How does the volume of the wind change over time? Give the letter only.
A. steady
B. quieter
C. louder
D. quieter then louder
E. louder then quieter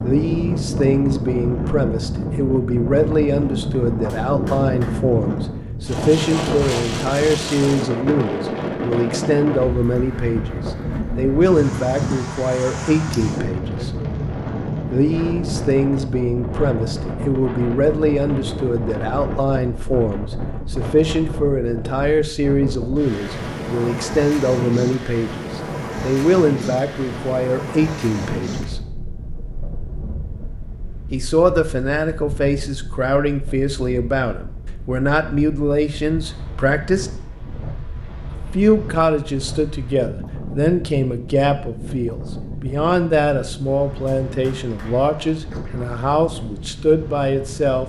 B.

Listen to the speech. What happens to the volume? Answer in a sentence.
The loudness of the speech stays about the same.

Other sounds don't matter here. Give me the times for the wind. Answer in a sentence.
You can hear the wind from 0.0 to 47.8 s.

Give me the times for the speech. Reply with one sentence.
The speech can be heard from 0.0 to 13.9 s, from 14.9 to 28.8 s, from 31.1 to 37.1 s and from 38.3 to 47.8 s.